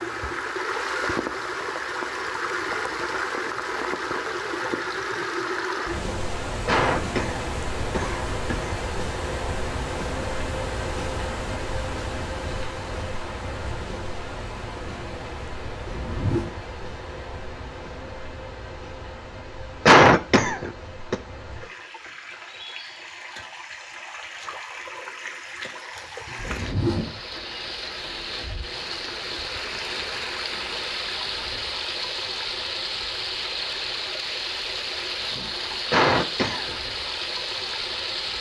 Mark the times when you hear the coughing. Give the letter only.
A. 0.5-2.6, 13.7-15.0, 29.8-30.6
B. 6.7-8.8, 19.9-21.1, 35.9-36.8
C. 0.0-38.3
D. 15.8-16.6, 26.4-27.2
B.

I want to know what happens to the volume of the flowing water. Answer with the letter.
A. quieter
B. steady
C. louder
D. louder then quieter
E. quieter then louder
E.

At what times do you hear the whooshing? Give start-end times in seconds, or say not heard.
15.8-16.6, 26.4-27.2.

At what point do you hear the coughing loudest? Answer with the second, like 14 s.
20 s.